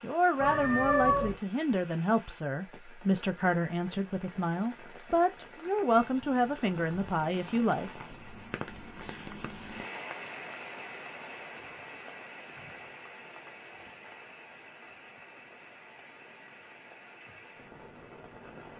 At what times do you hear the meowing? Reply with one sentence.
The meowing can be heard from 0.4 to 1.4 s.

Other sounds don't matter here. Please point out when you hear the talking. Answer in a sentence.
The talking can be heard from 0.0 to 7.9 s.